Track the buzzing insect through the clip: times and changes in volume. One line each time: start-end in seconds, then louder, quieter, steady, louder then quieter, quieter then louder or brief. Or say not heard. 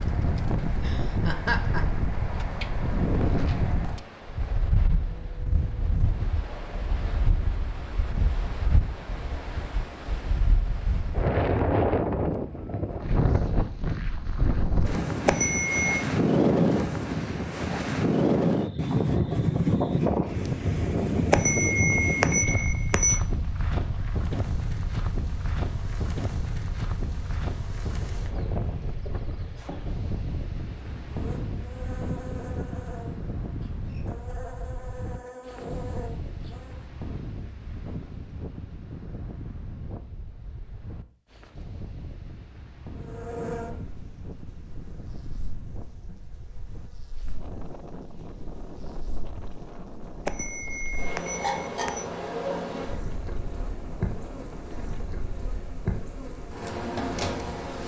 24.2-36.9 louder
43.0-57.8 quieter then louder.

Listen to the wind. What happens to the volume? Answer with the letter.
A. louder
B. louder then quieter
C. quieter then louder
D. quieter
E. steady
B.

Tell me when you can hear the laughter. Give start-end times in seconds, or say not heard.
0.7-1.9.